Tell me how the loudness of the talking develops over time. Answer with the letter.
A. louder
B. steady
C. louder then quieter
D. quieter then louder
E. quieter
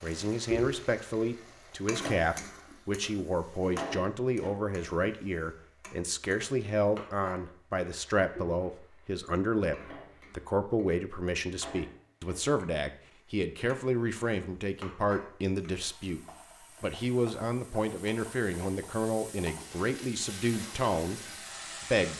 B.